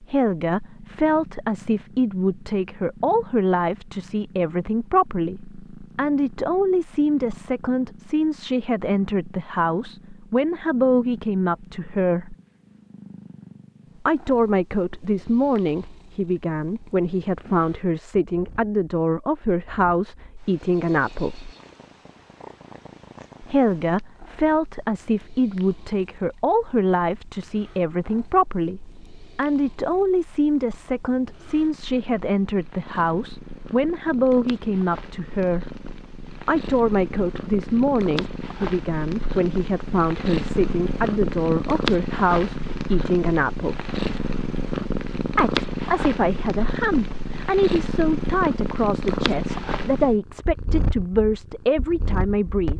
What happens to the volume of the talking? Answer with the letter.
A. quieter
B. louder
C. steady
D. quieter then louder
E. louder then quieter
C.